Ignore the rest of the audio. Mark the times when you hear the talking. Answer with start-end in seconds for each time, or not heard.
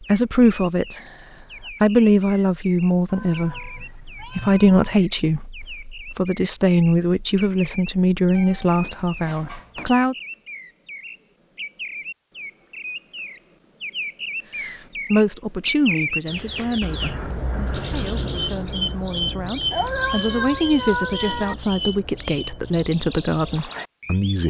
0.0-1.0, 1.6-10.2, 14.6-24.4.